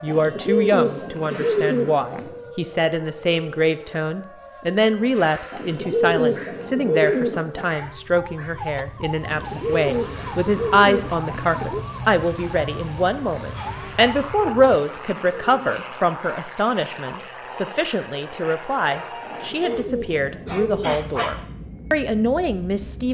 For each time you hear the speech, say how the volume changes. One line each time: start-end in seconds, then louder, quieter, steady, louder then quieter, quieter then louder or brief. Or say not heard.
0.0-23.0 steady.